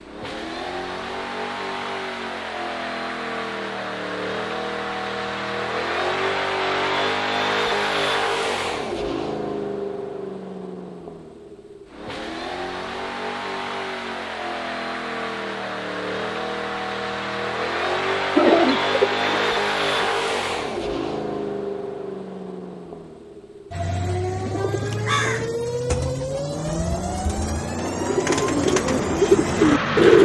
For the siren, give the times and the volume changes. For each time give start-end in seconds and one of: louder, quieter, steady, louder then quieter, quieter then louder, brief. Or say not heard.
not heard.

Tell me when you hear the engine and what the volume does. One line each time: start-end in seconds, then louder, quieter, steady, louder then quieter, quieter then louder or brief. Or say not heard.
0.0-30.2 steady.